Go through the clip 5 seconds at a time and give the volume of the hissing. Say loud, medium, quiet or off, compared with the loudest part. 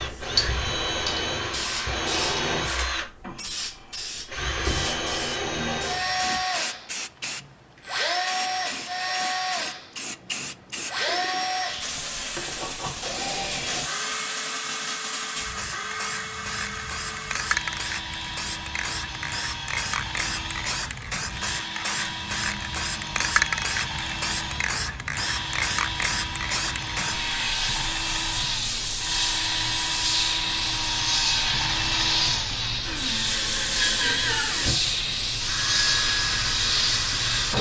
medium, medium, medium, medium, loud, loud, loud, loud.